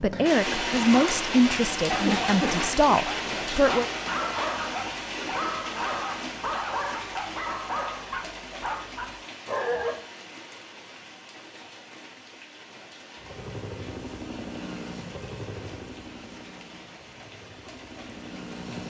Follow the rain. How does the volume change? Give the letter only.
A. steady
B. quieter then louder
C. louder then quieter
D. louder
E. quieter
E.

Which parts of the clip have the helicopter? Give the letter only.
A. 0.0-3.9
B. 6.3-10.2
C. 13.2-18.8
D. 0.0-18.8
C.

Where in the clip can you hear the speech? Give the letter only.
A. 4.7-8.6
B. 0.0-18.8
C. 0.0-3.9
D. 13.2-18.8
C.